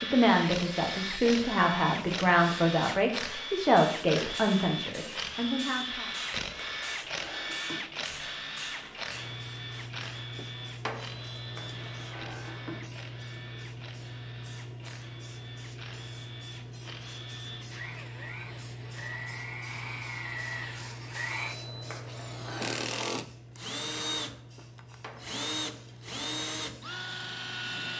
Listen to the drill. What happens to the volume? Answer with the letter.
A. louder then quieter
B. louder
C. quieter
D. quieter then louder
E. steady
D.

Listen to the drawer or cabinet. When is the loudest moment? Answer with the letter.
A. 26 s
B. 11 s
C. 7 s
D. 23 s
B.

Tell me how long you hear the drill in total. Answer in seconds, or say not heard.
28 s.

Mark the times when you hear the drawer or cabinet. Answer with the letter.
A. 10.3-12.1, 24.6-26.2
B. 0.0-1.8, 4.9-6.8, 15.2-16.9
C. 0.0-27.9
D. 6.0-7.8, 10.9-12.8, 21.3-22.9
A.